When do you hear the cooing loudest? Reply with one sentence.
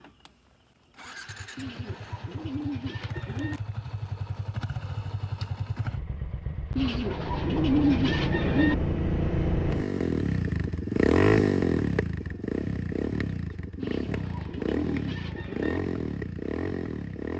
The loudest moment of the cooing is at 8 seconds.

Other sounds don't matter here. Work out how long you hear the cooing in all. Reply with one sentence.
You can hear the cooing for 6 seconds altogether.